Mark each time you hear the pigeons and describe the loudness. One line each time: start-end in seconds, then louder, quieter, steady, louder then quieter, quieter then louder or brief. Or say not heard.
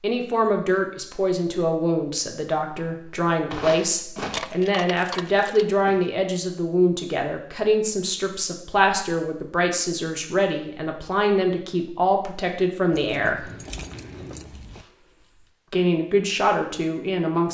not heard.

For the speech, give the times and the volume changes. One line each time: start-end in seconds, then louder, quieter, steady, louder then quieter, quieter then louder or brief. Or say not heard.
0.0-13.4 steady
15.7-17.4 brief.